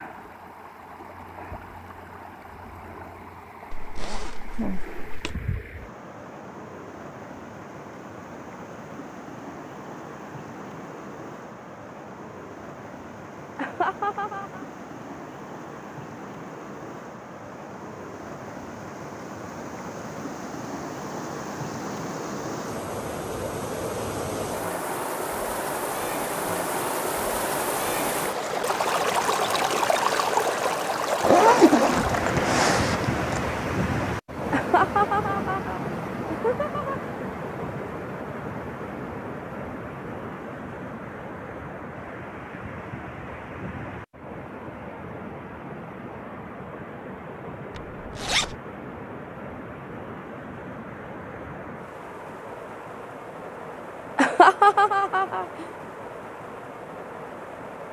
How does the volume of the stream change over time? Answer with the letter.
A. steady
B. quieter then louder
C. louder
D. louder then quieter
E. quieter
D.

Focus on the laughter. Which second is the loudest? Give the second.
55 s.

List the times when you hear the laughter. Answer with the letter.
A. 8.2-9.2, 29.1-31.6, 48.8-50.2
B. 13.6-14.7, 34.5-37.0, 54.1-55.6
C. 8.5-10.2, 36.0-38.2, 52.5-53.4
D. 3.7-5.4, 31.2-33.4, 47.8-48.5
B.